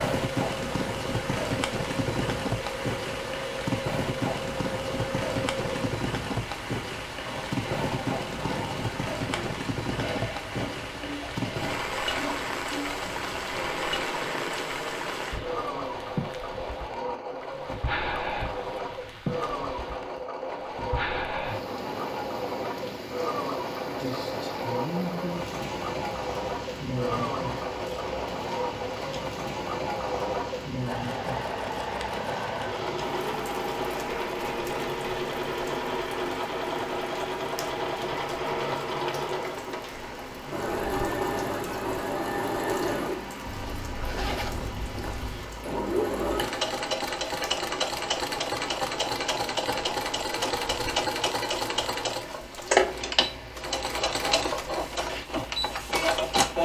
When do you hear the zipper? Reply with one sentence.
The zipper can be heard from 43.5 to 45.5 s.